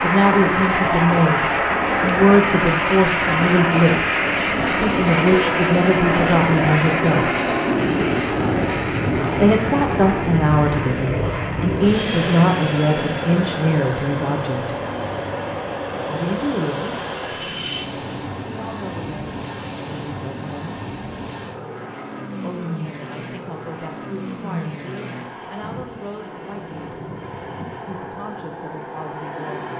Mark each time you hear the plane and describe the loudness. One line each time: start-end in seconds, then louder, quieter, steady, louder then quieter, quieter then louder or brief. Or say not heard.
0.0-29.7 quieter.